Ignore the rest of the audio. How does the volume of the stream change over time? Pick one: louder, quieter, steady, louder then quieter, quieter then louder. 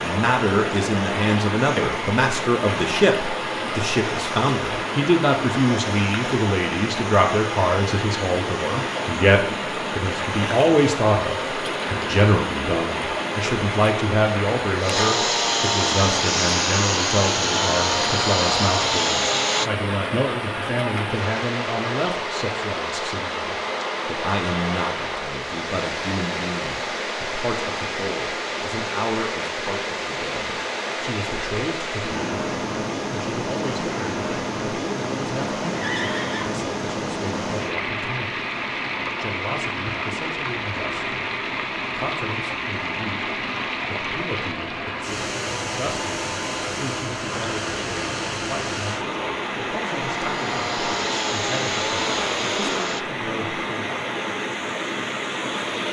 steady.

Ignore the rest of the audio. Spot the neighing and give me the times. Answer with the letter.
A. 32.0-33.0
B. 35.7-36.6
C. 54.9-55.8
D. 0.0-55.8
B.